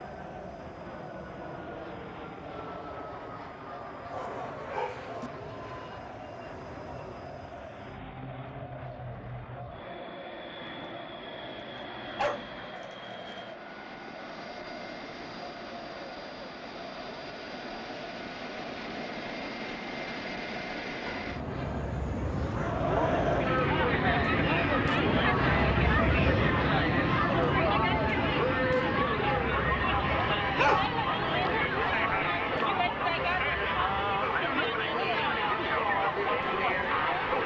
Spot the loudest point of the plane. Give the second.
26 s.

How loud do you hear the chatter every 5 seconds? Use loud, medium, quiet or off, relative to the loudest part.
quiet, quiet, quiet, quiet, loud, loud, loud, loud.